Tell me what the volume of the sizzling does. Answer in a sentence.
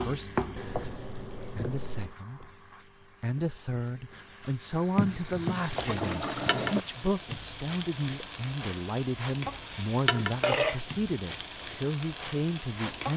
The volume of the sizzling goes down, then up.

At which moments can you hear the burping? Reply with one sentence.
The burping can be heard from 9.7 to 10.8 s.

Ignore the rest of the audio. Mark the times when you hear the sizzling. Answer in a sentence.
You can hear the sizzling from 0.0 to 13.1 s.